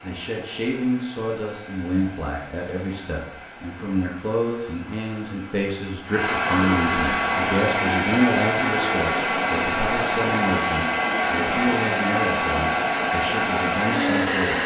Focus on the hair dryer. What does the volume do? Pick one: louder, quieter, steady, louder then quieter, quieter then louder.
louder.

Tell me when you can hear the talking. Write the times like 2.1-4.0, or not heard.
0.0-14.6.